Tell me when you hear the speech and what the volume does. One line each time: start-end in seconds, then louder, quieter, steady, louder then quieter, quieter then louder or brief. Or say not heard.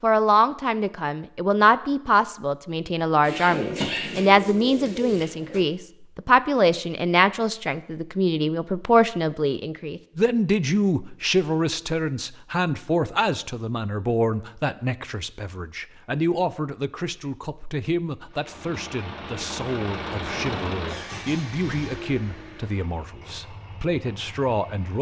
0.0-24.9 quieter.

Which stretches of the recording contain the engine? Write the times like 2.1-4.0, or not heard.
18.2-24.9.